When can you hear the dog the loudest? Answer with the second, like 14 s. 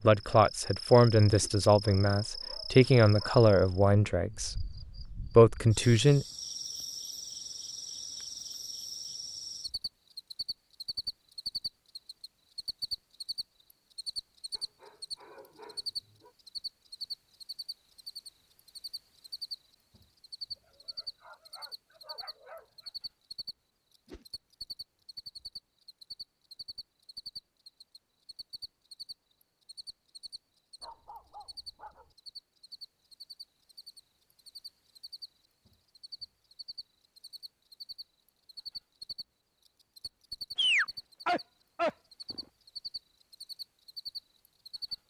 41 s.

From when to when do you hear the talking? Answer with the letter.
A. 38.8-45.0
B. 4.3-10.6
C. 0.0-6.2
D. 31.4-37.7
C.